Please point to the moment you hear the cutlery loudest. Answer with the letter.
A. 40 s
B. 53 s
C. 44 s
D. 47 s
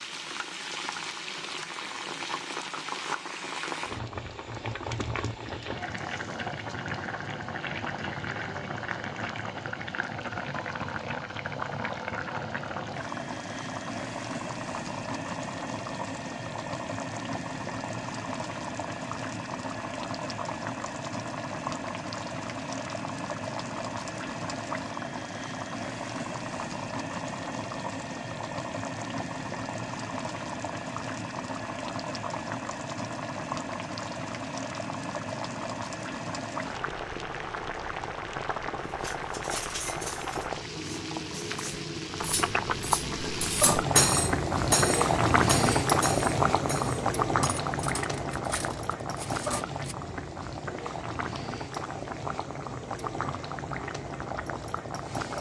C.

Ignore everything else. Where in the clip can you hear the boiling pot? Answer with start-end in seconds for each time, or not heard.
0.0-55.3.